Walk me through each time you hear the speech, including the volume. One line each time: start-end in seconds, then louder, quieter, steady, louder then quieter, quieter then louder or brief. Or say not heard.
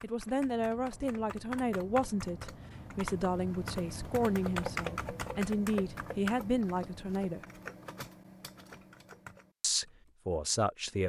0.0-7.4 steady
9.6-11.0 brief.